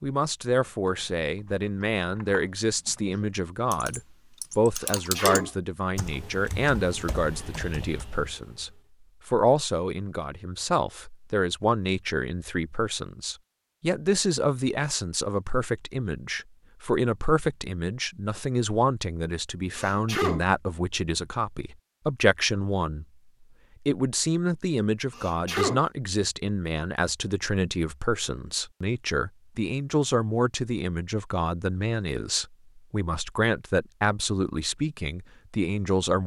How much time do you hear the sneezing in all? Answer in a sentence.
The sneezing can be heard for 2 seconds in total.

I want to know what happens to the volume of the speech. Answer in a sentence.
The loudness of the speech stays about the same.